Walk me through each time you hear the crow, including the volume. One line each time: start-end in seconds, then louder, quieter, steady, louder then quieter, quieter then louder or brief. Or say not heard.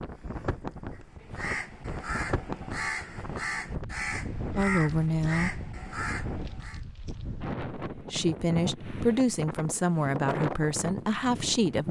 0.9-6.8 steady.